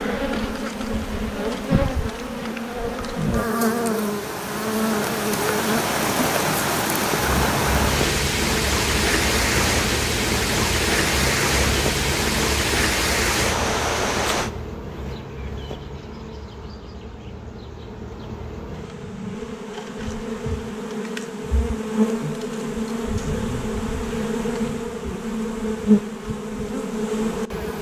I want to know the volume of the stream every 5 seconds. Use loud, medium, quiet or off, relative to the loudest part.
quiet, loud, loud, off, off, off.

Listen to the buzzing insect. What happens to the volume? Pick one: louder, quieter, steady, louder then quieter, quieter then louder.
quieter then louder.